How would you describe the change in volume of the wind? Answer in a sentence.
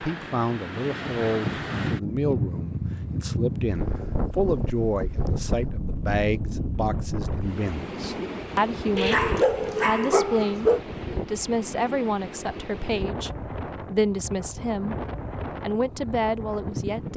The volume of the wind goes down.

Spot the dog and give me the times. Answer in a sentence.
The dog can be heard from 8.9 to 10.8 s.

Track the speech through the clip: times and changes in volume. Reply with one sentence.
You can hear the speech from 0.0 to 17.1 s, at a steady volume.